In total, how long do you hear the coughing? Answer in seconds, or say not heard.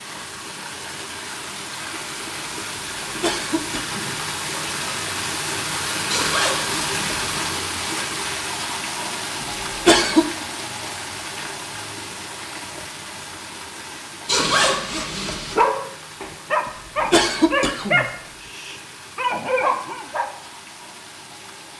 2 s.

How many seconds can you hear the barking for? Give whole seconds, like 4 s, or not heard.
5 s.